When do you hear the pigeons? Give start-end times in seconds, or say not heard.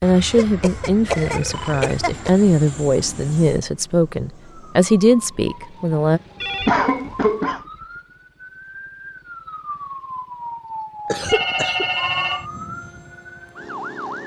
not heard.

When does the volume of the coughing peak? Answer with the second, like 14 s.
7 s.